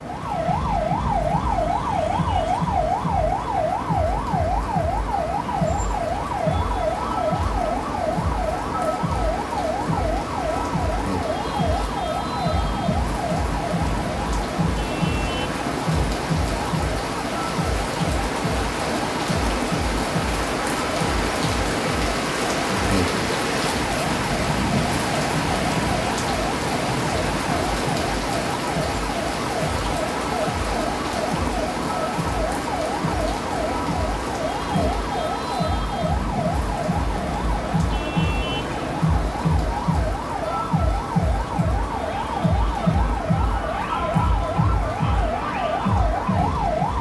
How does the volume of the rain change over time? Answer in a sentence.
The volume of the rain goes up, then down.